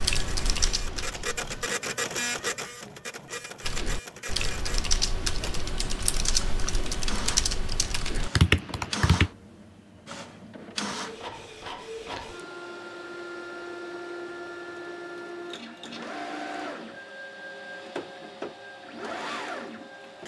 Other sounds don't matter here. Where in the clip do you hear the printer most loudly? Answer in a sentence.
The loudest moment of the printer is at 2 seconds.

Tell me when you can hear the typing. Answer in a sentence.
The typing can be heard from 0.0 to 1.6 s and from 3.6 to 9.3 s.